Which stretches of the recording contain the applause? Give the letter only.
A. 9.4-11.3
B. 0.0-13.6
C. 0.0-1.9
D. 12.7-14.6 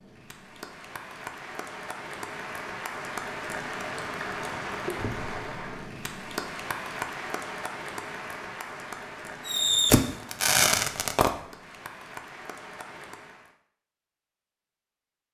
B.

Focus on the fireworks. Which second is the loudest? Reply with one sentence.
The loudest moment of the fireworks is at 10 seconds.